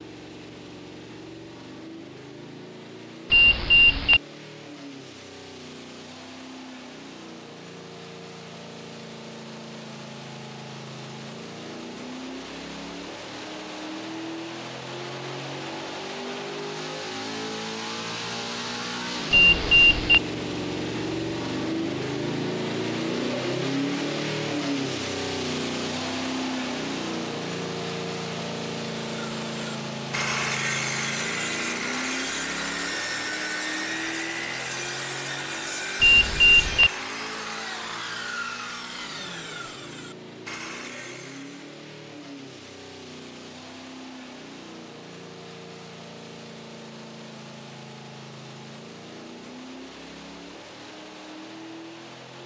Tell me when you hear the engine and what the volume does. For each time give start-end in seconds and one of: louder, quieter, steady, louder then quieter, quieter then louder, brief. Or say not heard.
0.0-52.4 louder then quieter.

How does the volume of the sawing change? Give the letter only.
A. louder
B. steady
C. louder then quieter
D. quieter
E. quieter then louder
D.